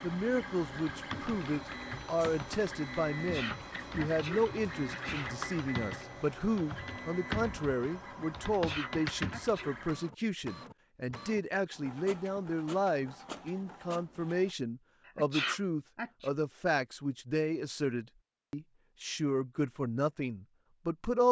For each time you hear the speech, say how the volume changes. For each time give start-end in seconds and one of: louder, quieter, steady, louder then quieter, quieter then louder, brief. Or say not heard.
0.0-21.2 steady.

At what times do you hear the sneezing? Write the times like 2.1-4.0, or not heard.
3.1-5.3, 8.4-9.7, 15.1-16.3.